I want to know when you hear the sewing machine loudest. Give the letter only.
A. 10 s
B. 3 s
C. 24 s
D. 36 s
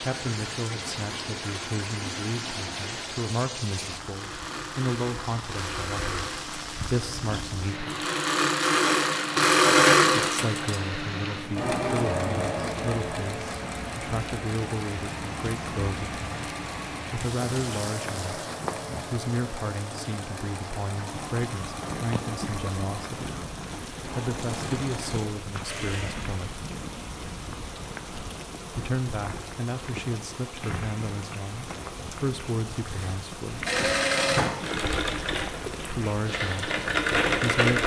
A.